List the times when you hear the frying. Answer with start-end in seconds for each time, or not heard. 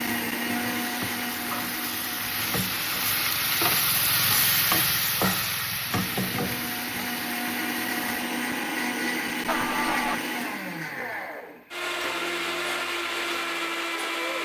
0.0-8.0.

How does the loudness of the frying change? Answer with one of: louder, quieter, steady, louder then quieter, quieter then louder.
louder then quieter.